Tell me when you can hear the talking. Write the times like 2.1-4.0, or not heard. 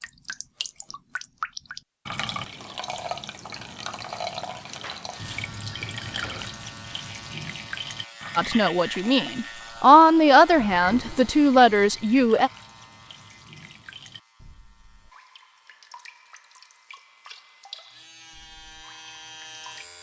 8.3-12.5.